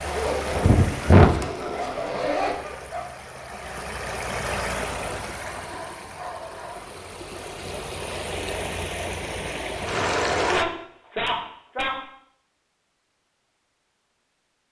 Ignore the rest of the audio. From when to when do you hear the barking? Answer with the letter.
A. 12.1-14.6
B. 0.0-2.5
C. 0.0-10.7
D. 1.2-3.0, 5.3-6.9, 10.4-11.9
D.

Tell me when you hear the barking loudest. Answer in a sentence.
The volume of the barking peaks at 11 seconds.